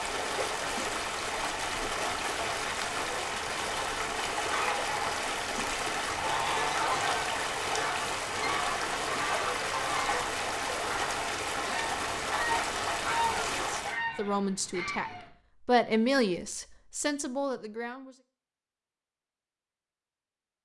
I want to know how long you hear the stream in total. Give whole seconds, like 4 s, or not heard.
14 s.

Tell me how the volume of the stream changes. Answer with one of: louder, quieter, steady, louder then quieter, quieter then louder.
steady.